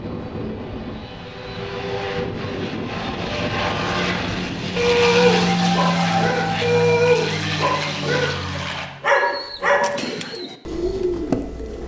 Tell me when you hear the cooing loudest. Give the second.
11 s.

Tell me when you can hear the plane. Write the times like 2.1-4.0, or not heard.
0.0-8.9.